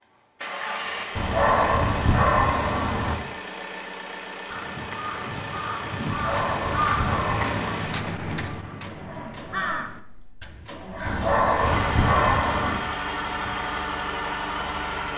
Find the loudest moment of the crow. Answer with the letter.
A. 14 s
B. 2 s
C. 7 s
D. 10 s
C.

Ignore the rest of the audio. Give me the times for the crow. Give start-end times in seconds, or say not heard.
4.5-11.2.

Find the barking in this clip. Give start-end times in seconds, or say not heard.
1.1-3.1, 6.0-7.8, 11.1-12.8.